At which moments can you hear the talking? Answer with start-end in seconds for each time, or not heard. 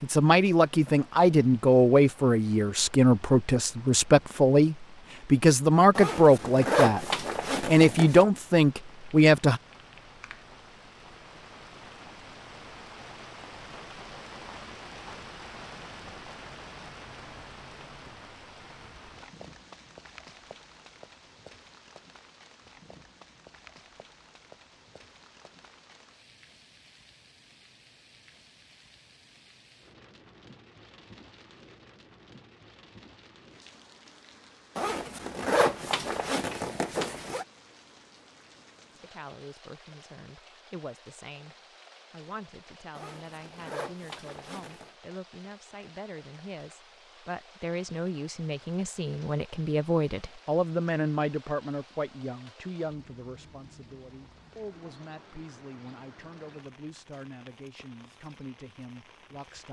0.0-9.6, 39.0-59.6.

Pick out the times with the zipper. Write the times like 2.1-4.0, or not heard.
6.0-8.2, 34.8-37.5, 43.0-44.9.